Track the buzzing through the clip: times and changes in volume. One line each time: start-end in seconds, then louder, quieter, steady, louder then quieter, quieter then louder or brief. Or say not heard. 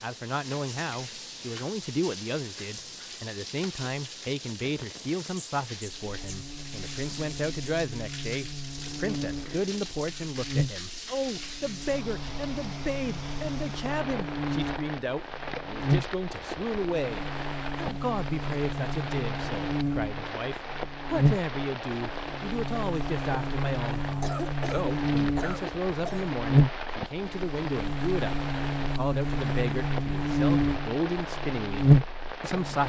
6.0-32.8 louder.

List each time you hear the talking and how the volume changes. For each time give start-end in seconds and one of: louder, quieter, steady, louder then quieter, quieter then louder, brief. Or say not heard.
0.0-32.8 steady.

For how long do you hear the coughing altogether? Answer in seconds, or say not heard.
2 s.